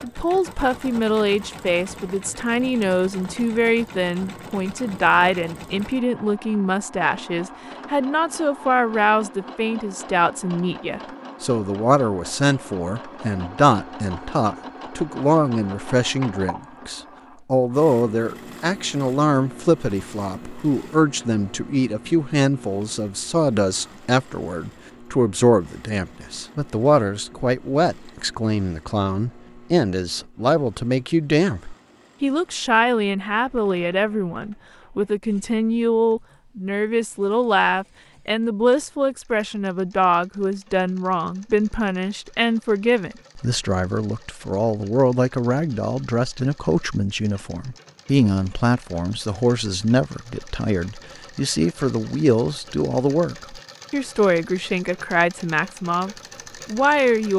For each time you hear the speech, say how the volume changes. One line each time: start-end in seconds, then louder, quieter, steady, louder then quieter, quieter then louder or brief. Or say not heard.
0.0-57.3 steady.